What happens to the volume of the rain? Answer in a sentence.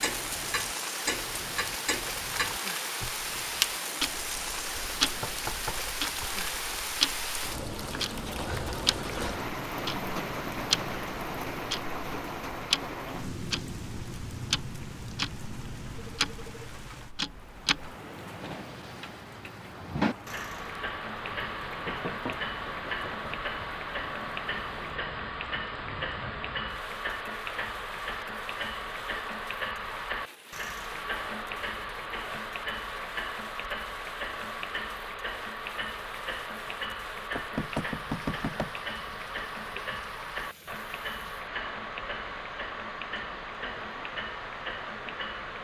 The loudness of the rain goes down.